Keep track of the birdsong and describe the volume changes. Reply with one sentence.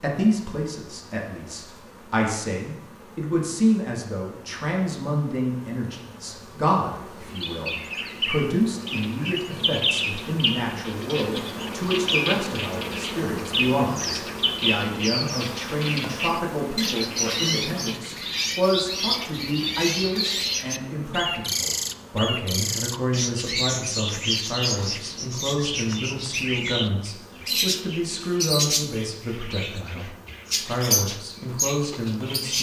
The loudness of the birdsong stays about the same.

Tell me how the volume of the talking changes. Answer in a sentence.
The volume of the talking stays about the same.